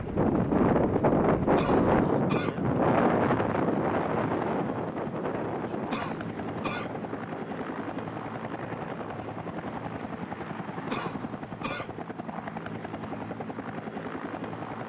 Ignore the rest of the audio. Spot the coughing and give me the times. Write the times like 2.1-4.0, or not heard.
1.6-2.5, 5.9-6.9, 10.9-11.9.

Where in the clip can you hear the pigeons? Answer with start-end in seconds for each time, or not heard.
not heard.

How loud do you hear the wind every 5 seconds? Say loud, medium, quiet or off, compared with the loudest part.
loud, quiet, off.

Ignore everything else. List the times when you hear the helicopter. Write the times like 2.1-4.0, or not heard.
0.0-14.8.